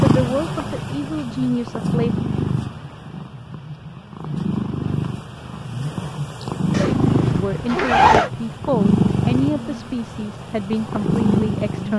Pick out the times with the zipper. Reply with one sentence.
The zipper can be heard from 6.7 to 8.3 s.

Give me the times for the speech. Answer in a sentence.
The speech can be heard from 0.0 to 2.1 s and from 7.3 to 11.9 s.